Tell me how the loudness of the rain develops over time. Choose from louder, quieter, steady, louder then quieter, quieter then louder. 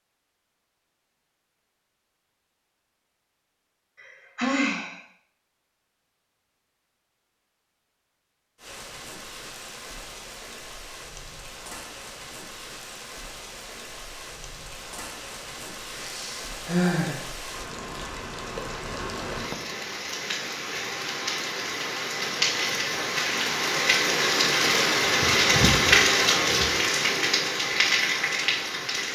louder.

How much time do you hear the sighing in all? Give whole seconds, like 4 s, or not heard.
2 s.